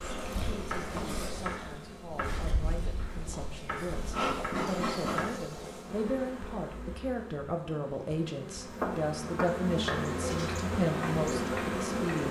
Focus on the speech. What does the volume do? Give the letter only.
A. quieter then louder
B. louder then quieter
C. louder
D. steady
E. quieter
C.